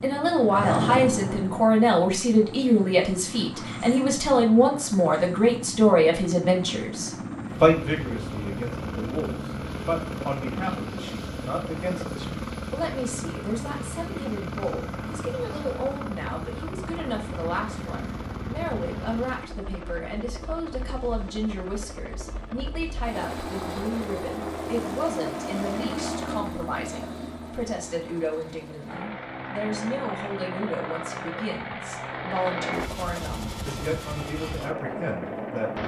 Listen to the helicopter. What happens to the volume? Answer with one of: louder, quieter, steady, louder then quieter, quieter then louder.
steady.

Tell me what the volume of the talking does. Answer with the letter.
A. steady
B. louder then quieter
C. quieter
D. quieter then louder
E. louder
C.